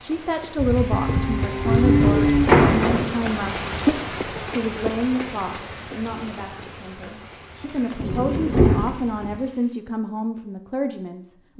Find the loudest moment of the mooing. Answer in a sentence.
The volume of the mooing peaks at 2 seconds.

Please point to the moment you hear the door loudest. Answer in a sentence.
The volume of the door peaks at 3 seconds.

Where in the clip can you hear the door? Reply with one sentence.
The door can be heard from 2.2 to 3.1 s and from 8.0 to 9.4 s.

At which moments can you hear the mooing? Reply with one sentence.
The mooing can be heard from 0.6 to 3.0 s.